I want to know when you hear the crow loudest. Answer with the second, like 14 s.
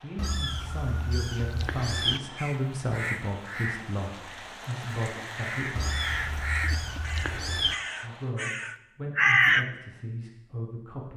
9 s.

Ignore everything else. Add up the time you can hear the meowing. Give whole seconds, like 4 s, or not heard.
4 s.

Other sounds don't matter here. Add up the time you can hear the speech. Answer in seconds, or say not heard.
9 s.